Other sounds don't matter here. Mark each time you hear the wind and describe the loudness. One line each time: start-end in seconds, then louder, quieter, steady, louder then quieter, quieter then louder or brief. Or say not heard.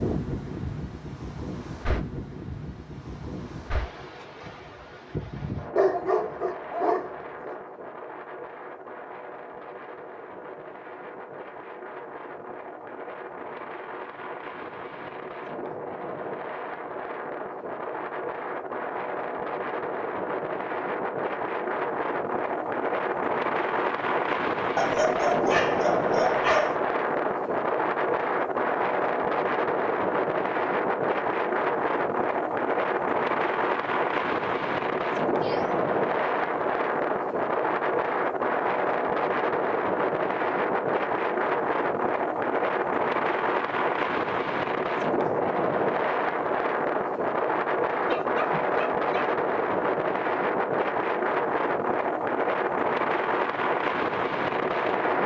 0.0-55.2 louder.